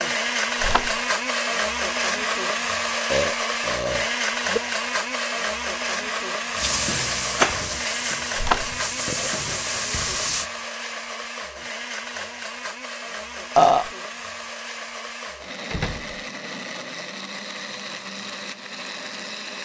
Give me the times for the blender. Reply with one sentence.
The blender can be heard from 0.0 to 19.5 s.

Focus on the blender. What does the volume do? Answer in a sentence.
The volume of the blender goes down.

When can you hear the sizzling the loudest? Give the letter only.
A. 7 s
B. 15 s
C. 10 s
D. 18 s
A.